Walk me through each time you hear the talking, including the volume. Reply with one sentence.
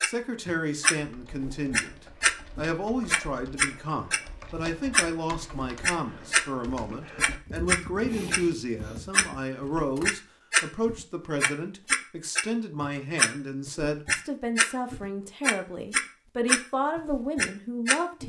The talking can be heard from 0.0 to 18.2 s, at a steady volume.